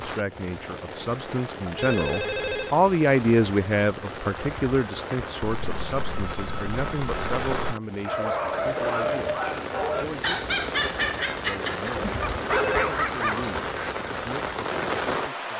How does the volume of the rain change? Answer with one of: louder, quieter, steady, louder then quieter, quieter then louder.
louder.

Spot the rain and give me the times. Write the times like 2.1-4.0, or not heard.
0.0-15.5.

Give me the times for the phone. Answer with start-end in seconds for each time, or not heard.
1.6-2.8, 5.4-7.8, 12.0-12.9.